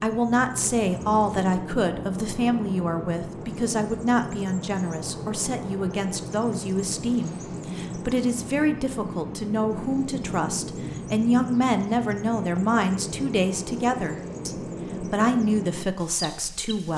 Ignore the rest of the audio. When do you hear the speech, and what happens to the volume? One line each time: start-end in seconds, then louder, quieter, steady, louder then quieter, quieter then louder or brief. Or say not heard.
0.0-16.9 steady.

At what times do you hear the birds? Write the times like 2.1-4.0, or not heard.
0.0-16.9.